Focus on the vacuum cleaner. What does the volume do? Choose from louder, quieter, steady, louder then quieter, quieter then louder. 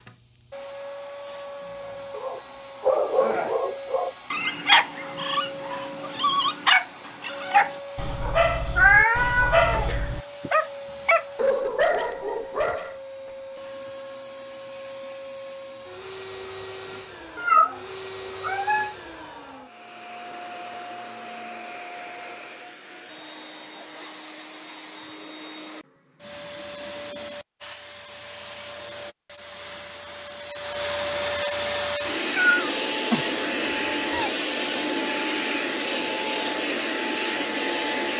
louder.